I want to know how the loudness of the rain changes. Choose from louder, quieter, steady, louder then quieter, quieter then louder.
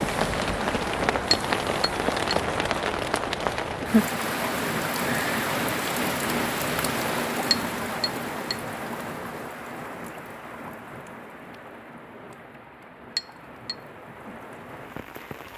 quieter.